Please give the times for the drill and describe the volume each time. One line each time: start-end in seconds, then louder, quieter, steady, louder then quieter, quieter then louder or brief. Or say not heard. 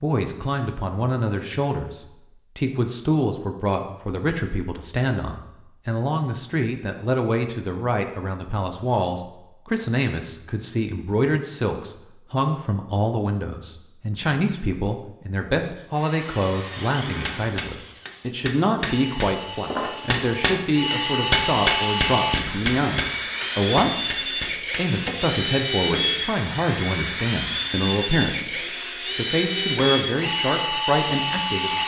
15.8-31.8 louder.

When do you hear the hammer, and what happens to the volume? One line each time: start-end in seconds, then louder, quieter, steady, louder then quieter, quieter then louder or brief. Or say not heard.
17.2-25.1 louder then quieter.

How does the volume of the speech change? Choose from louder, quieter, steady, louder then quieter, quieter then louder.
steady.